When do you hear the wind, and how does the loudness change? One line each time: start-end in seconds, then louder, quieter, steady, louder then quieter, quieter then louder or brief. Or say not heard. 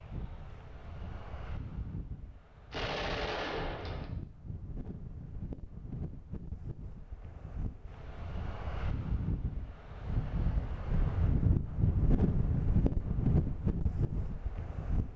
0.0-15.1 louder.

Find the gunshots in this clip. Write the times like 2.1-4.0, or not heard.
2.7-4.1.